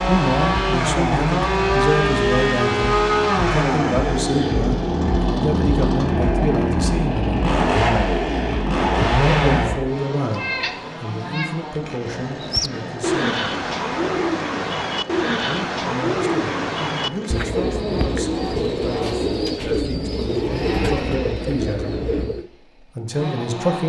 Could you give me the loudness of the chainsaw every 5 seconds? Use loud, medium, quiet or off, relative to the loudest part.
loud, loud, quiet, quiet, quiet.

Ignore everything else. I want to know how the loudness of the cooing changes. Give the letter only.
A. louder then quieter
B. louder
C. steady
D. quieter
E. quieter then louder
C.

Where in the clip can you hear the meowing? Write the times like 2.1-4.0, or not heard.
10.3-11.5.